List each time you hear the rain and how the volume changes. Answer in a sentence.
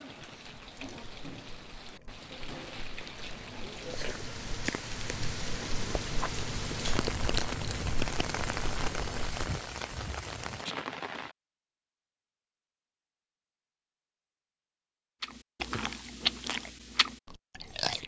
The rain can be heard from 0.0 to 11.3 s, getting louder.